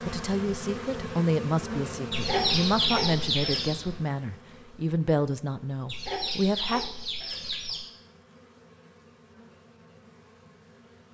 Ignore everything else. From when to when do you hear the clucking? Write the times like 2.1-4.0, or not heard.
2.1-3.8, 5.8-7.9.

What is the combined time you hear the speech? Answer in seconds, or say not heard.
7 s.